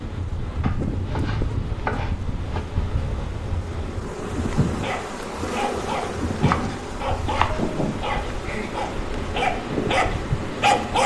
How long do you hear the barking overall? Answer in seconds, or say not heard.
6 s.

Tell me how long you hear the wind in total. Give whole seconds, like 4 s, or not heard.
11 s.